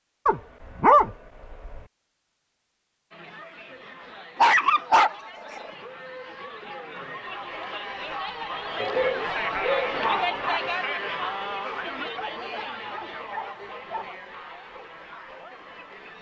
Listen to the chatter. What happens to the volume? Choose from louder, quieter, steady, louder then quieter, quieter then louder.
louder then quieter.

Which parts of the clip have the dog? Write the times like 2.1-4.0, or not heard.
0.2-1.8, 4.3-5.7, 8.8-10.6, 12.2-14.1.